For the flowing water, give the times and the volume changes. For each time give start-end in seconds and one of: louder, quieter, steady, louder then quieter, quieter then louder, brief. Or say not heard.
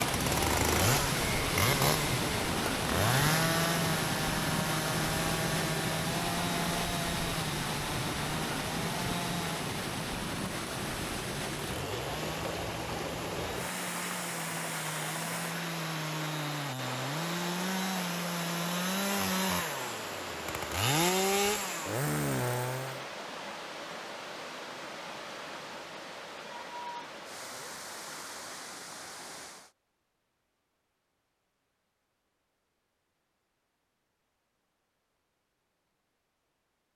0.0-29.7 quieter.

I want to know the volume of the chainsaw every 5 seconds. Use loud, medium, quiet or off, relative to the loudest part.
loud, medium, medium, loud, loud, off, off, off.